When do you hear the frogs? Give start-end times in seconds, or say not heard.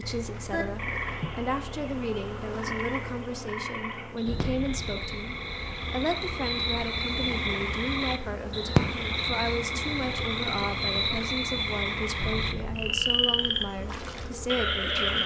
0.0-15.2.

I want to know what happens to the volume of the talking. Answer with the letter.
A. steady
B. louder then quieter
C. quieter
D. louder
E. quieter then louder
A.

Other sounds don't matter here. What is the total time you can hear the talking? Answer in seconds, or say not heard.
15 s.